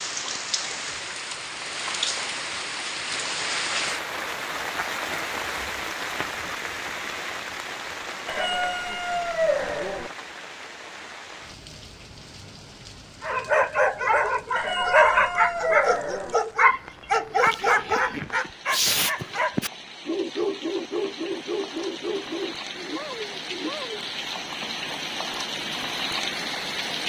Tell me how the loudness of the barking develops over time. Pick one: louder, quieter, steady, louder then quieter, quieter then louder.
quieter.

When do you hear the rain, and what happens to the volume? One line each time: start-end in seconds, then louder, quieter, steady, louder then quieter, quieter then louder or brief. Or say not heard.
0.0-27.0 quieter then louder.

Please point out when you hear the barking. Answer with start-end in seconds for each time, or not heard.
13.2-24.1.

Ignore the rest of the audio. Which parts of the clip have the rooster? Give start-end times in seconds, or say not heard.
8.2-10.1, 14.6-16.4.